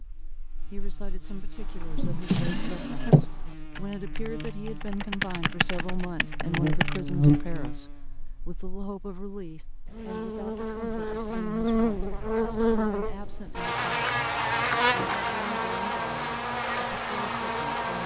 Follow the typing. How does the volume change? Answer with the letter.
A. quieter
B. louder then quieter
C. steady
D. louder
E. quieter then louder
D.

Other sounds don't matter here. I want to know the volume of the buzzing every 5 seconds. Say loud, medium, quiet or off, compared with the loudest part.
quiet, loud, loud, loud.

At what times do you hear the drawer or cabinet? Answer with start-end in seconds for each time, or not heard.
1.9-3.2.